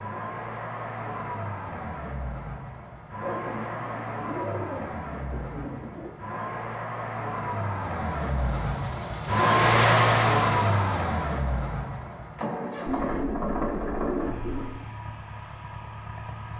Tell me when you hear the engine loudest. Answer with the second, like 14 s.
10 s.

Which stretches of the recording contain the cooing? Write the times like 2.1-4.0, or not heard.
3.2-6.1, 12.8-14.8.